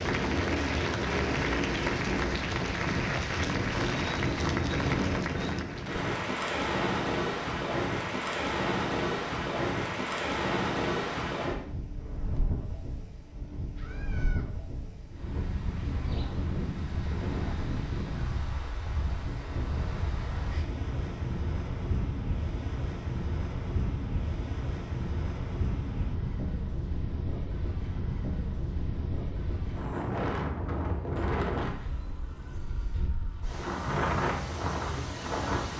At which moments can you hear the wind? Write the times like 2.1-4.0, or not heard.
0.0-35.7.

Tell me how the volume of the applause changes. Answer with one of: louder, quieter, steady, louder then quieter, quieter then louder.
steady.